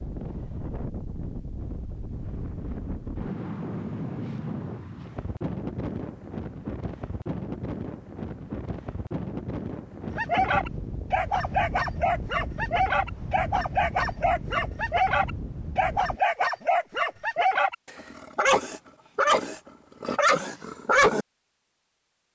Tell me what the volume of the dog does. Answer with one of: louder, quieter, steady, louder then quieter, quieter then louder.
steady.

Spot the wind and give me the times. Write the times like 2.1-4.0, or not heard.
0.0-16.2.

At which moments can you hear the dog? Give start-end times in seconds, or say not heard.
10.2-21.2.